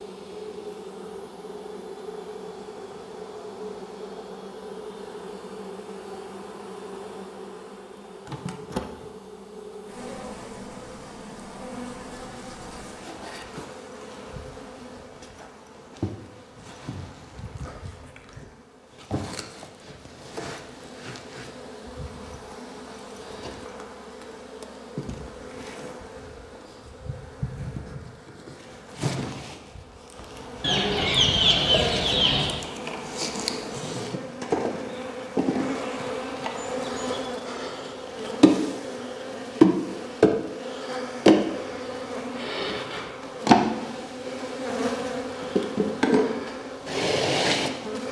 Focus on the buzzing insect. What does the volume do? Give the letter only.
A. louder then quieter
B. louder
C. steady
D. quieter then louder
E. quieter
B.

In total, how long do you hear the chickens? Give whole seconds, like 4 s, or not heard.
2 s.